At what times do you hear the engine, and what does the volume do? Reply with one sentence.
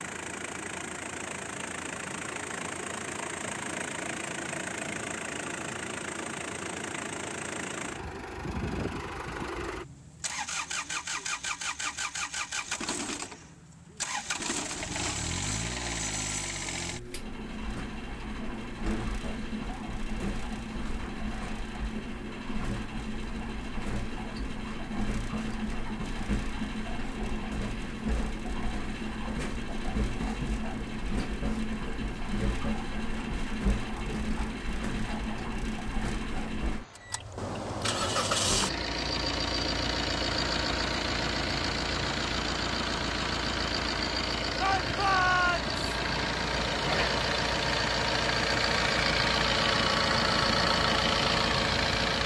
You can hear the engine from 0.0 to 52.2 s, getting louder.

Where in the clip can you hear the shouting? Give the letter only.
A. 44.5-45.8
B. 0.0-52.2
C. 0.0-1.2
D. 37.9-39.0
A.